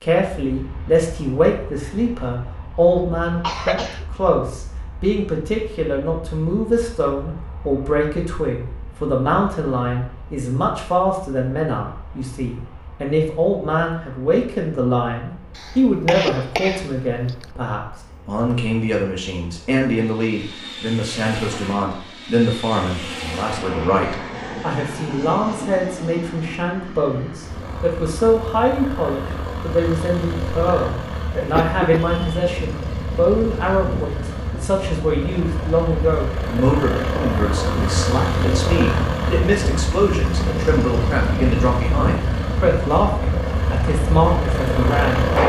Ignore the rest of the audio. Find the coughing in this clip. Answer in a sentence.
You can hear the coughing from 3.0 to 4.0 s, from 15.6 to 17.4 s and from 31.4 to 32.5 s.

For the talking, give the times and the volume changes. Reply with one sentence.
You can hear the talking from 0.0 to 45.3 s, at a steady volume.